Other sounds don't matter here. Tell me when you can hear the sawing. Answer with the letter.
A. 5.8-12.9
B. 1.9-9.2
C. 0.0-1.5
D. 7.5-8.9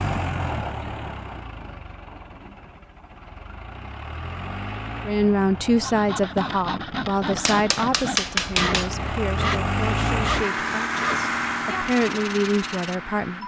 A.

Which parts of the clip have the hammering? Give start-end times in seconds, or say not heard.
7.5-8.9.